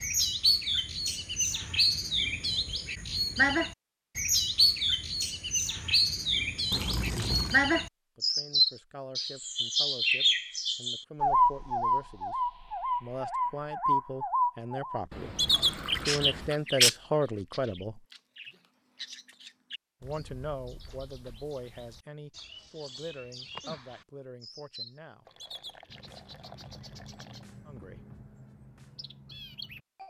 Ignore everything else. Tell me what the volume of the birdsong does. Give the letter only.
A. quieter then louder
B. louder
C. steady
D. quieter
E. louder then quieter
D.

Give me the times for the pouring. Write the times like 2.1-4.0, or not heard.
6.7-7.6, 15.1-16.6, 25.2-27.4.